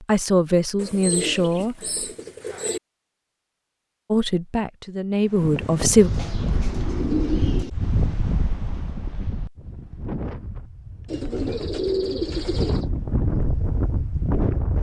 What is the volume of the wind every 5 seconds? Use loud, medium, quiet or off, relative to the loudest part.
off, loud, loud.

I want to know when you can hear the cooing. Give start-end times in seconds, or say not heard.
0.8-2.8, 6.0-7.7, 11.1-12.8.